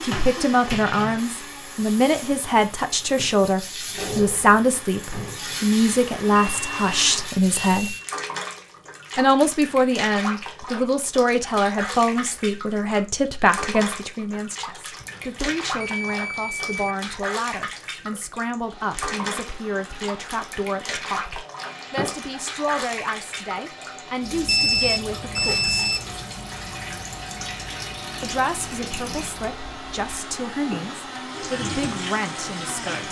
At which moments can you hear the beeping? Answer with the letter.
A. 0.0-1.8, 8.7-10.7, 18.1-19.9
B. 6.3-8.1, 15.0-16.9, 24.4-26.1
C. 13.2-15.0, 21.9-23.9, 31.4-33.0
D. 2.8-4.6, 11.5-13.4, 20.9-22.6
B.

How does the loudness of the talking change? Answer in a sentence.
The loudness of the talking goes down.